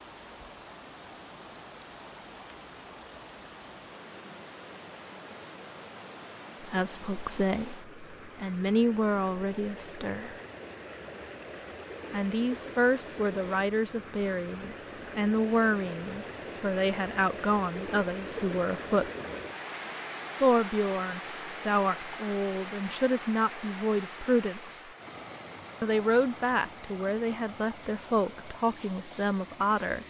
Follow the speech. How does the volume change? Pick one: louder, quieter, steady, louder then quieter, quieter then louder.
steady.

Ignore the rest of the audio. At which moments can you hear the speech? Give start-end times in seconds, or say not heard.
6.6-10.4, 12.1-19.1, 20.4-24.9, 25.8-30.0.